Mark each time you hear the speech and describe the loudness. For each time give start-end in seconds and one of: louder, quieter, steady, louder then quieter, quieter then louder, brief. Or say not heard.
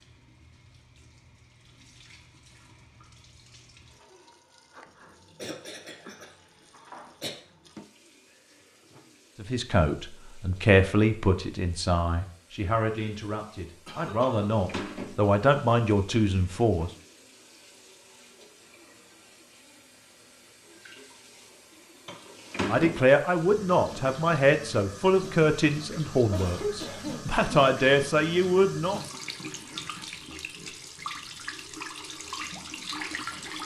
9.4-16.9 quieter then louder
22.6-29.0 quieter then louder.